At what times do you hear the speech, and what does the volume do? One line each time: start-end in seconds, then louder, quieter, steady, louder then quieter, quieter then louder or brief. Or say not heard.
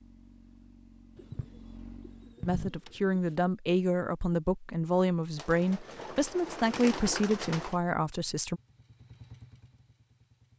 2.5-8.6 steady.